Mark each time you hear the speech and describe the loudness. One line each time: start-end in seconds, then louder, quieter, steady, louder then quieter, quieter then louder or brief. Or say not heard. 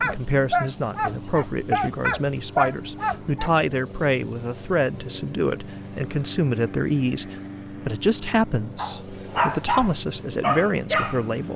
0.0-11.5 steady.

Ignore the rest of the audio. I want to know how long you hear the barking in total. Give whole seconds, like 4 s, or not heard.
6 s.